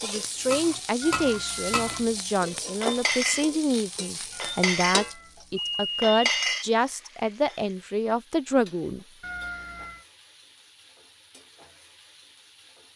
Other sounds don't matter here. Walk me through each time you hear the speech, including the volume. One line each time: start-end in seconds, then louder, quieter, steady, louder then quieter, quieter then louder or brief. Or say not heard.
0.0-9.1 steady.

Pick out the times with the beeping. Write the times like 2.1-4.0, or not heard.
1.0-2.1, 4.3-6.7, 9.2-10.1.